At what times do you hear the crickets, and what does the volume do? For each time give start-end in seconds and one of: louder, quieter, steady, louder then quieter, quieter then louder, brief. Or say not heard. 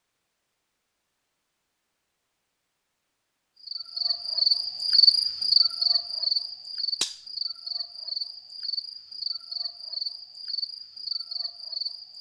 3.6-12.1 quieter.